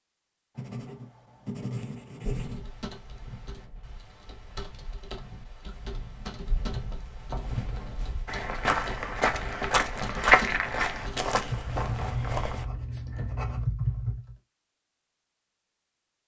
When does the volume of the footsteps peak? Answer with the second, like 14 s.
10 s.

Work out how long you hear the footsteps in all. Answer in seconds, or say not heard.
10 s.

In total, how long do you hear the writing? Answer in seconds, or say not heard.
6 s.